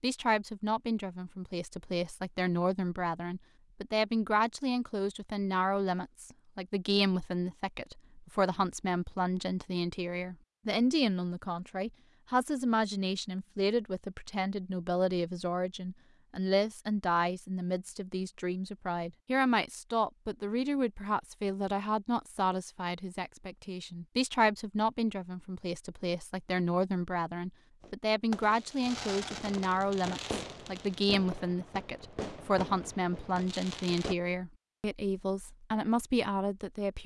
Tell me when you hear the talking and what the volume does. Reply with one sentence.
You can hear the talking from 0.0 to 37.0 s, at a steady volume.